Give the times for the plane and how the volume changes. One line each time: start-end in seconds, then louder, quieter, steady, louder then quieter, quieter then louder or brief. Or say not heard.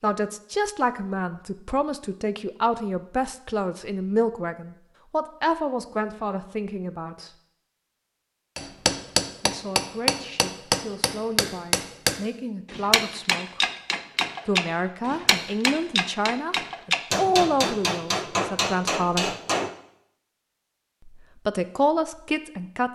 not heard.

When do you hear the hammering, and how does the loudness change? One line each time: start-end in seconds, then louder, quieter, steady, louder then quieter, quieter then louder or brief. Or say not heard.
8.6-19.8 steady.